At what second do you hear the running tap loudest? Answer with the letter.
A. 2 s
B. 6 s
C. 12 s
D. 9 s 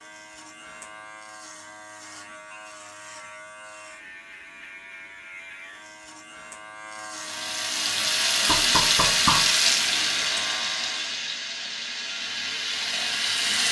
D.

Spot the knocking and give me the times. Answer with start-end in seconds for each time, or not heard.
8.4-9.6.